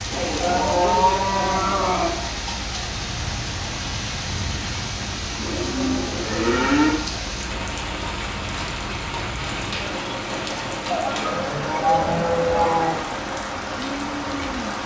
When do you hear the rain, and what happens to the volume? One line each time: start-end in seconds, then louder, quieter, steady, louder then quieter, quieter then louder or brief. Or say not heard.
0.0-14.8 steady.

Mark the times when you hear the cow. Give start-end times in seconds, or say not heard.
0.1-2.1, 5.3-7.0, 10.9-12.9.